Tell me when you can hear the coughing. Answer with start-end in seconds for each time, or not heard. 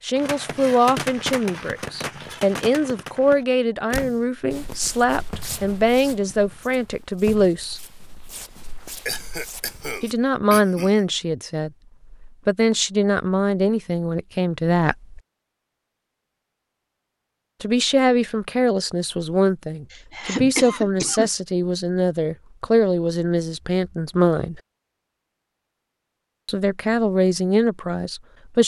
9.1-10.9, 19.9-21.3.